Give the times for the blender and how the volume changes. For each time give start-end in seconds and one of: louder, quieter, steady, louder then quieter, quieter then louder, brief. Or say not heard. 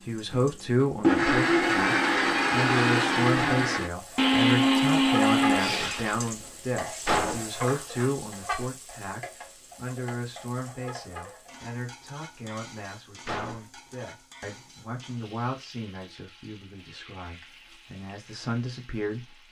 0.0-6.3 steady.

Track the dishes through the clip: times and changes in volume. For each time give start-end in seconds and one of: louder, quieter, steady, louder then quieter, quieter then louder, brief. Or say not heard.
not heard.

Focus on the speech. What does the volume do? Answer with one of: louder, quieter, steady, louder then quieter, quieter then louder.
quieter.